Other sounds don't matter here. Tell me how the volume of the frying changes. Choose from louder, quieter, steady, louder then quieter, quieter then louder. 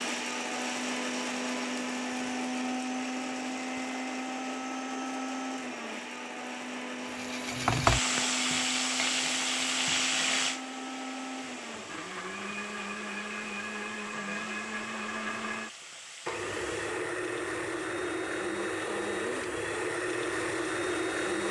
quieter.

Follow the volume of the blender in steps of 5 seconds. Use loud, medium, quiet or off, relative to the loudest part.
loud, medium, medium, loud, loud.